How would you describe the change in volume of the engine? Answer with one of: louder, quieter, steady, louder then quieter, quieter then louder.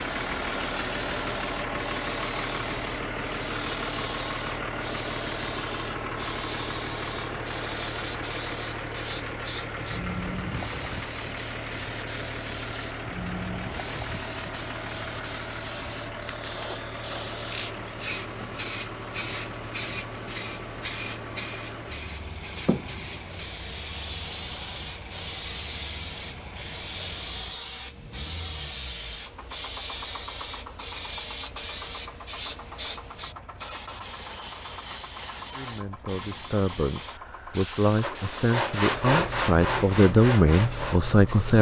quieter.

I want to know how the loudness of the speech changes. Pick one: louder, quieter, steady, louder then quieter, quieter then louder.
louder.